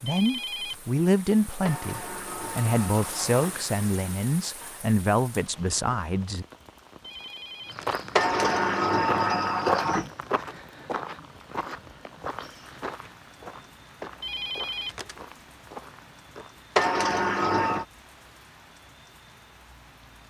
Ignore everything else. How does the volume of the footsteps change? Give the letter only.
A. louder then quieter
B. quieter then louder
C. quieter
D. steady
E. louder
C.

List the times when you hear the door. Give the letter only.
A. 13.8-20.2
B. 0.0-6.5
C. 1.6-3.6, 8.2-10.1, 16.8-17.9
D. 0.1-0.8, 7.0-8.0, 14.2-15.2
C.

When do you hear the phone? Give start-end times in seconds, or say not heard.
0.1-0.8, 7.0-8.0, 14.2-15.2.